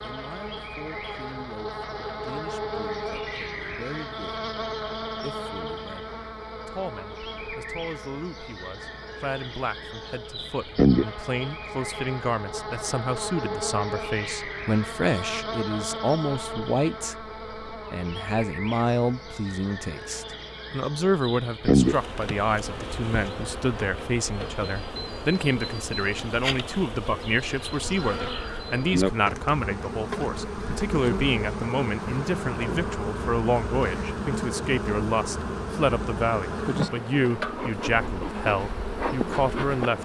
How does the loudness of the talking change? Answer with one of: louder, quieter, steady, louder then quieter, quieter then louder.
louder.